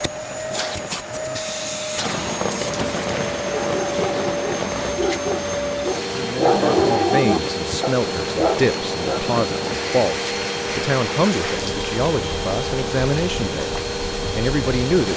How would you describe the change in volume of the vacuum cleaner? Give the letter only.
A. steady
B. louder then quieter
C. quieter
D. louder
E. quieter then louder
A.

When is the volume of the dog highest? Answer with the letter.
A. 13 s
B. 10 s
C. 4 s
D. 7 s
D.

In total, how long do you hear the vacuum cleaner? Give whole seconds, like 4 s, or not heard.
15 s.